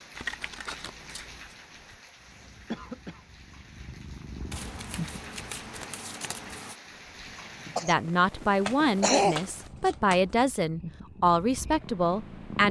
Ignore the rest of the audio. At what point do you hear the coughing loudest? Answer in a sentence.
The volume of the coughing peaks at 9 seconds.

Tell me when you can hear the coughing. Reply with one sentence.
You can hear the coughing from 2.7 to 3.2 s and from 7.7 to 9.4 s.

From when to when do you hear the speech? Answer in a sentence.
You can hear the speech from 7.8 to 12.6 s.